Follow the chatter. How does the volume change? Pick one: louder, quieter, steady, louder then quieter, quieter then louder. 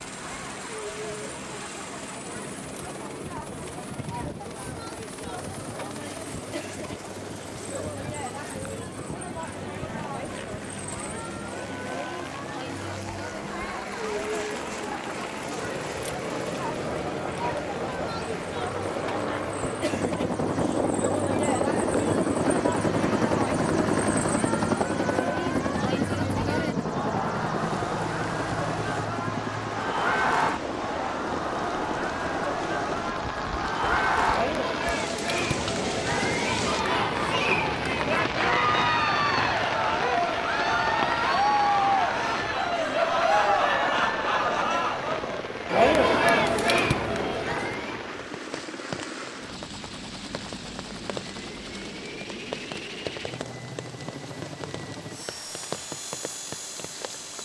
louder.